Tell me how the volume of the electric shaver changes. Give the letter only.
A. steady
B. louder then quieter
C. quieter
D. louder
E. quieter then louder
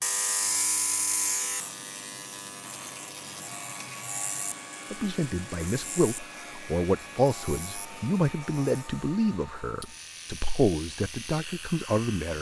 C.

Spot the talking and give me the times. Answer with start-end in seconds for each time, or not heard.
4.9-12.3.